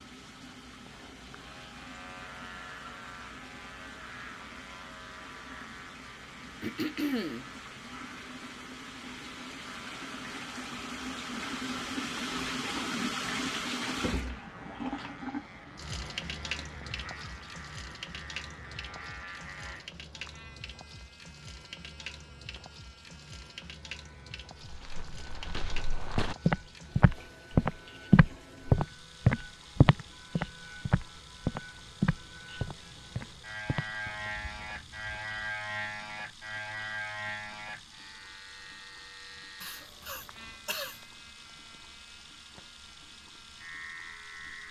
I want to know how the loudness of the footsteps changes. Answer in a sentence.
The volume of the footsteps goes up, then down.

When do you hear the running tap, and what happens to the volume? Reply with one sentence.
You can hear the running tap from 0.0 to 44.6 s, getting louder then quieter.